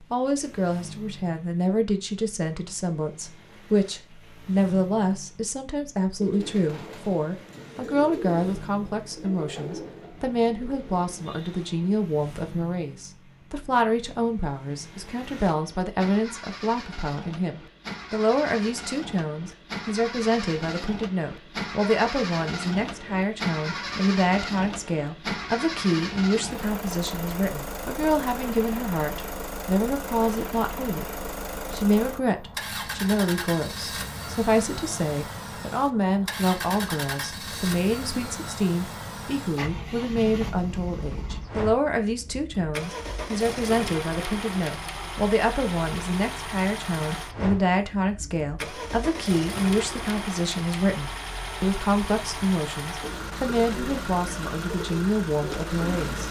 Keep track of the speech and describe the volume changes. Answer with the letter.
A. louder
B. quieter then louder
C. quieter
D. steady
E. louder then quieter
D.